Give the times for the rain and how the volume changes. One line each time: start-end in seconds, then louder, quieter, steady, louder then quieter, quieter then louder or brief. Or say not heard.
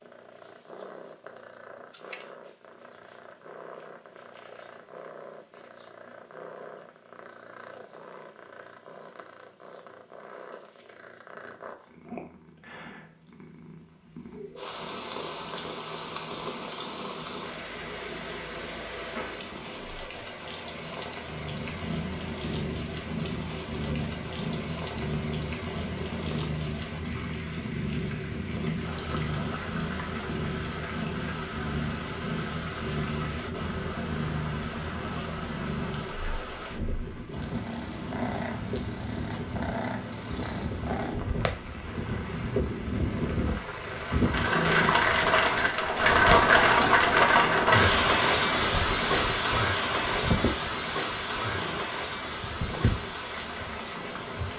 14.6-54.5 louder.